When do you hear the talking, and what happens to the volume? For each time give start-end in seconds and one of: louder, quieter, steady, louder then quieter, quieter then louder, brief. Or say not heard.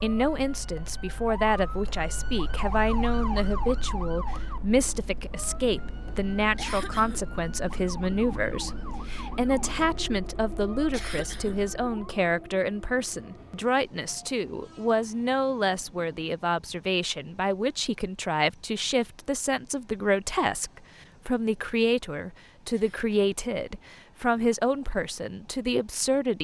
0.0-26.3 steady.